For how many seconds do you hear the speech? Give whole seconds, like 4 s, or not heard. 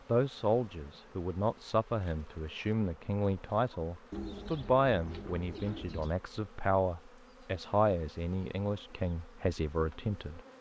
10 s.